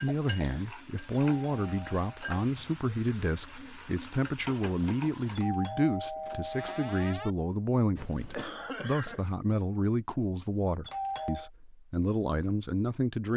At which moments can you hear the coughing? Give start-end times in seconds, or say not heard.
0.1-0.7, 8.0-9.2.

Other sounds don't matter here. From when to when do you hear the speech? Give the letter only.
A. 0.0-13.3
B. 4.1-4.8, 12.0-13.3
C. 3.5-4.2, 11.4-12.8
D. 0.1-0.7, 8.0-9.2
A.